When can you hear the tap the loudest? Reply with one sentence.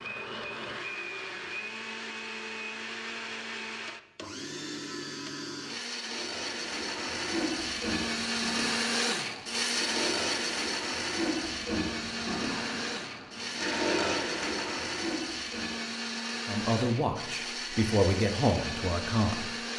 The loudest moment of the tap is at 14 seconds.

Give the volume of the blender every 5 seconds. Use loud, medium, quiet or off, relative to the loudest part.
medium, loud, loud, loud.